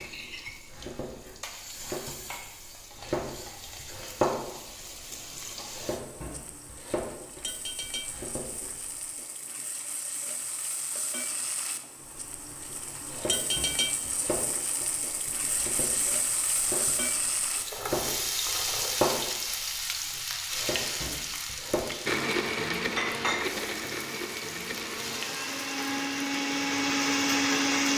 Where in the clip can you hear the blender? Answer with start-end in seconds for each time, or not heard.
22.1-27.9.